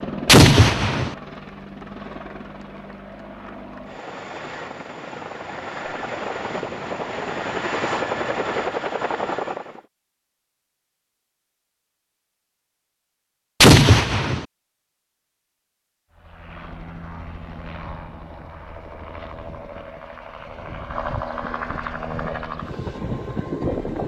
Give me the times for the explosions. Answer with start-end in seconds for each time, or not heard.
0.2-1.1, 13.6-14.4.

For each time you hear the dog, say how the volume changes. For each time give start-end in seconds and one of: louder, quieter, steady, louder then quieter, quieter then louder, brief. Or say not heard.
not heard.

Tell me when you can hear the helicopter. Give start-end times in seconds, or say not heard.
0.0-9.8, 16.1-24.0.